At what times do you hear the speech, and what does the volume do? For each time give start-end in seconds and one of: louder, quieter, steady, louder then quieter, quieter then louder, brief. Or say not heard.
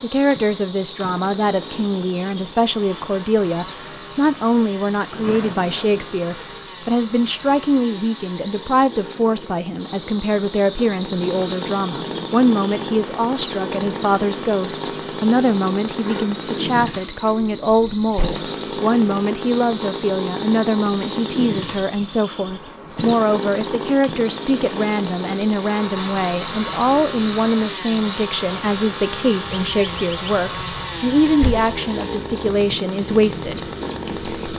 0.0-34.5 steady.